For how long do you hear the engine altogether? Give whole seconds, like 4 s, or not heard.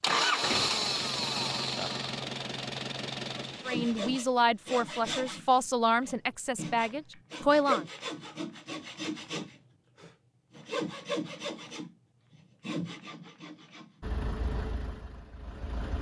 6 s.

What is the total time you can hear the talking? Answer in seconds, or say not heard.
4 s.